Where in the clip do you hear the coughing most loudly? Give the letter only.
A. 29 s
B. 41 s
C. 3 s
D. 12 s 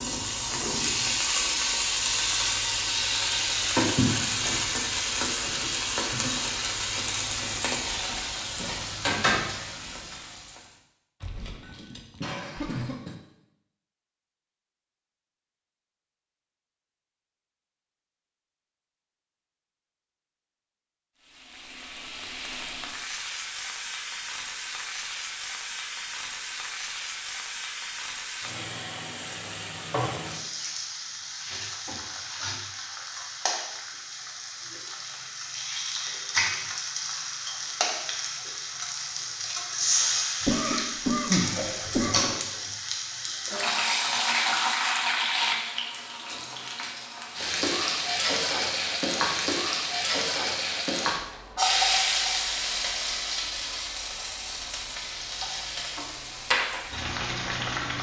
B.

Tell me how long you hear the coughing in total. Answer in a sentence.
The coughing can be heard for 4 seconds in total.